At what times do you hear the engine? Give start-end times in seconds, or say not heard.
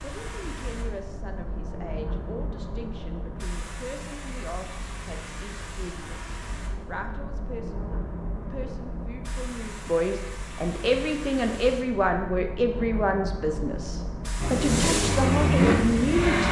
14.4-16.4.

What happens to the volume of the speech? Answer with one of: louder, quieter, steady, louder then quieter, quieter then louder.
louder.